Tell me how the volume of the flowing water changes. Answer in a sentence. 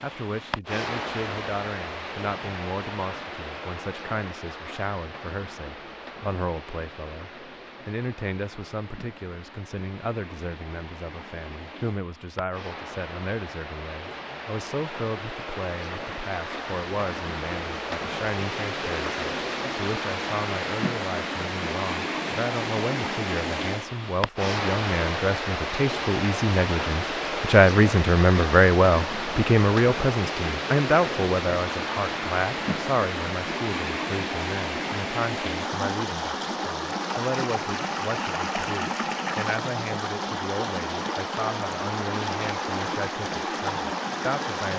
The loudness of the flowing water goes up.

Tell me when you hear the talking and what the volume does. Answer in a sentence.
You can hear the talking from 0.0 to 44.7 s, getting louder then quieter.